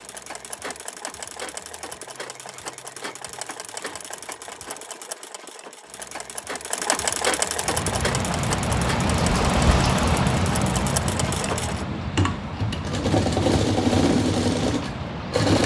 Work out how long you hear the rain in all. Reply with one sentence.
You can hear the rain for 8 seconds altogether.